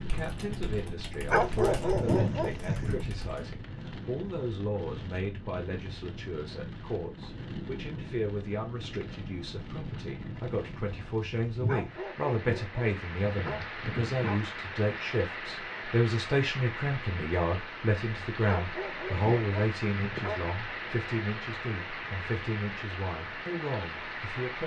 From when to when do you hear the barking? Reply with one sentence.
You can hear the barking from 1.3 to 3.0 s, from 11.7 to 14.4 s and from 18.4 to 20.4 s.